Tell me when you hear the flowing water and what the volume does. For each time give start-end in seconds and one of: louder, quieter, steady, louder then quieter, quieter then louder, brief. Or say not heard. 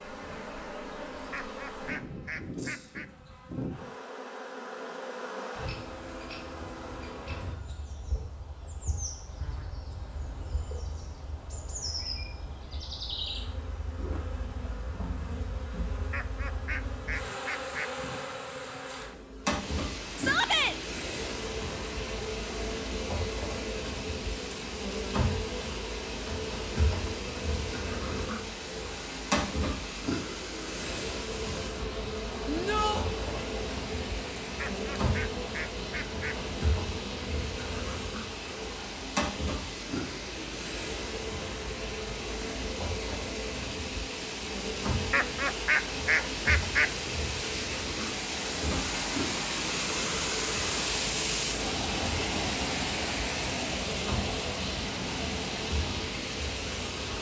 19.4-57.1 louder.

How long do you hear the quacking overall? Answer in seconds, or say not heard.
7 s.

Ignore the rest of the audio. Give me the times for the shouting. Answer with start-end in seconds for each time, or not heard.
20.1-20.8, 32.5-33.0.